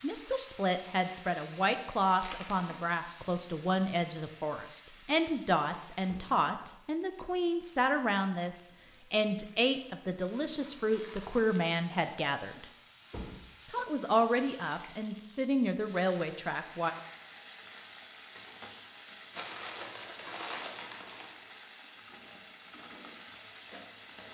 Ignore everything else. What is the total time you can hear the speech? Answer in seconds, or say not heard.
16 s.